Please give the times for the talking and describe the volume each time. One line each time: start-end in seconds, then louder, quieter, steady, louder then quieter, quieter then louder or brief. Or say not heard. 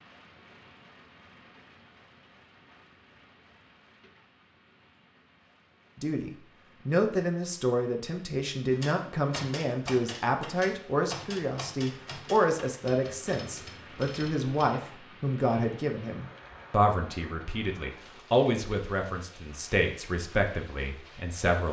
6.0-21.6 steady.